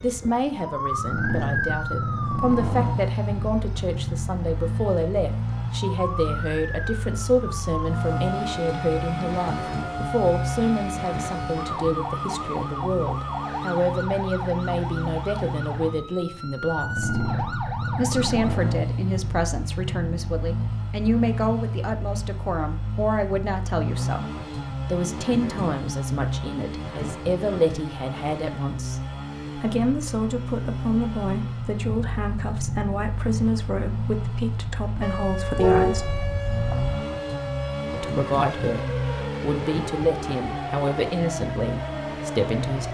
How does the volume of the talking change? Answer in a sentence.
The loudness of the talking stays about the same.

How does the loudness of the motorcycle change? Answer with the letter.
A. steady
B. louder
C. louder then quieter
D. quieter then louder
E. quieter
A.